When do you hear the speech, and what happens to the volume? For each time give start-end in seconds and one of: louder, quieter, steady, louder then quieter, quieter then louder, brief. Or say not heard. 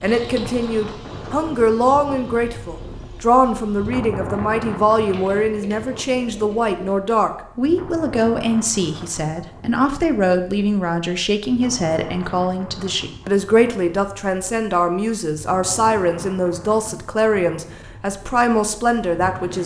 0.0-19.6 steady.